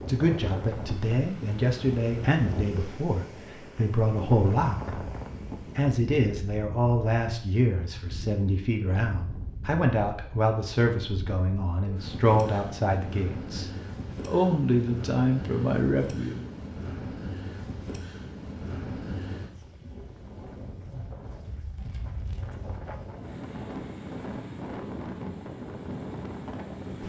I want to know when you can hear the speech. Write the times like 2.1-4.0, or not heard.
0.0-5.0, 5.8-16.5.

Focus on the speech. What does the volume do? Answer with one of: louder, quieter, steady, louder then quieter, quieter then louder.
steady.